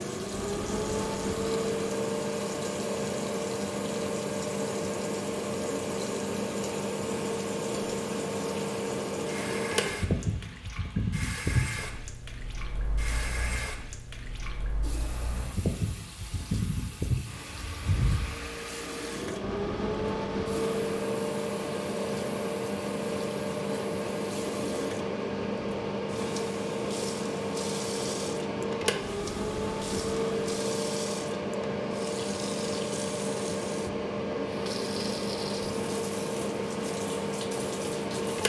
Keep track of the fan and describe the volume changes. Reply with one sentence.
The loudness of the fan stays about the same.